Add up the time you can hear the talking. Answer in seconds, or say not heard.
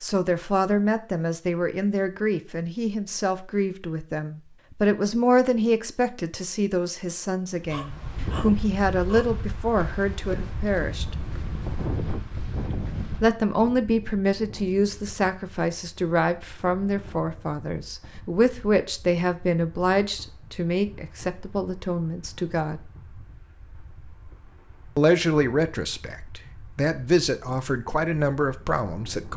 25 s.